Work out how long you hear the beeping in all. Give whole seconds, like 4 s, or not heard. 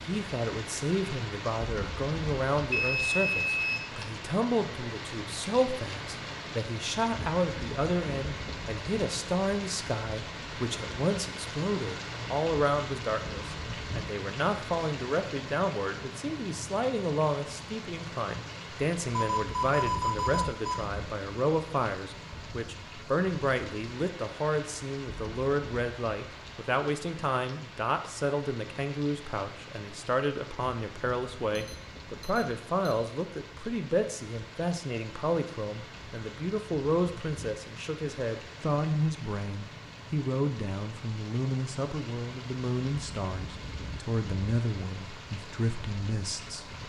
4 s.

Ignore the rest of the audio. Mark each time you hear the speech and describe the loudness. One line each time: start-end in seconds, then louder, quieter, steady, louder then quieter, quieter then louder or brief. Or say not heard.
0.0-46.8 steady.